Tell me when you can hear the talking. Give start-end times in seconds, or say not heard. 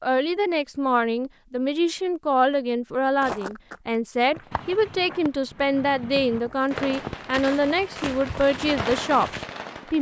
0.0-9.3.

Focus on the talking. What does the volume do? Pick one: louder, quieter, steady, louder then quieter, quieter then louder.
steady.